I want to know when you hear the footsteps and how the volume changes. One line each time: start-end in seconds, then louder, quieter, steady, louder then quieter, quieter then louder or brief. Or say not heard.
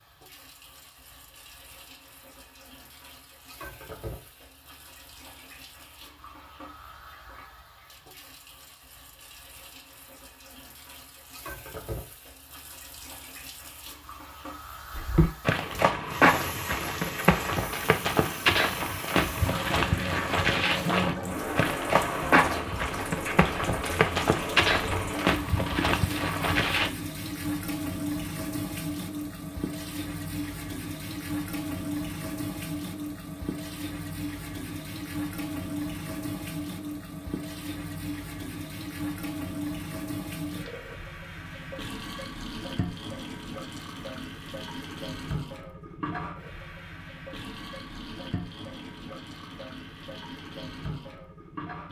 14.9-26.9 steady.